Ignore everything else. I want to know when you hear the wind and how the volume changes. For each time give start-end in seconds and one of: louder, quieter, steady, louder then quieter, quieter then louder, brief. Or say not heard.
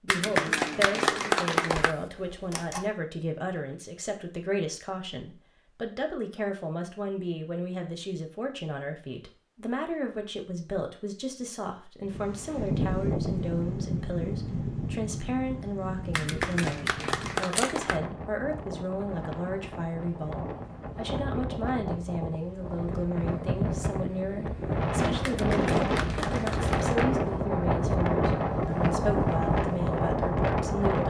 12.0-31.0 quieter then louder.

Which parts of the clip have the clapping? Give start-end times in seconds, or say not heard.
0.1-1.9, 16.1-18.0, 25.2-27.1.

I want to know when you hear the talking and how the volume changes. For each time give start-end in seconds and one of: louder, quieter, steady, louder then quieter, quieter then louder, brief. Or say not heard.
0.0-31.0 steady.